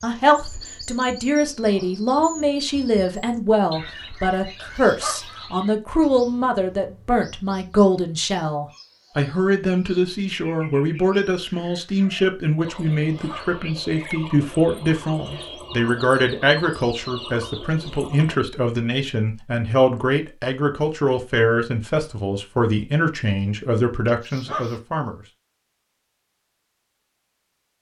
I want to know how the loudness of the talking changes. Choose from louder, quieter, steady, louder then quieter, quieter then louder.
steady.